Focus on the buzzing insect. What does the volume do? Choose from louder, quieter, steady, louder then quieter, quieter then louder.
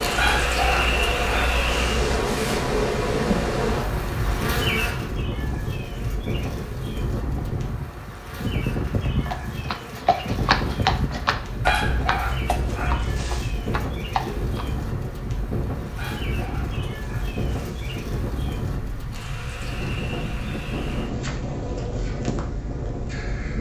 quieter.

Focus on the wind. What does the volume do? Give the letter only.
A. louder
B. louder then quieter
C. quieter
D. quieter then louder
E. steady
E.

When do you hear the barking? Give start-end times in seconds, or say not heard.
0.1-2.2, 11.7-13.6, 15.9-18.0.